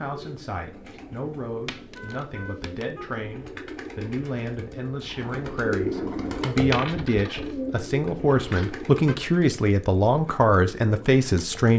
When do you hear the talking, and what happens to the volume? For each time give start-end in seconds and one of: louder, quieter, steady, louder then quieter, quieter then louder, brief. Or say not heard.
0.0-11.7 louder.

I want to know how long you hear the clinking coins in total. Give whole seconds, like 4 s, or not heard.
2 s.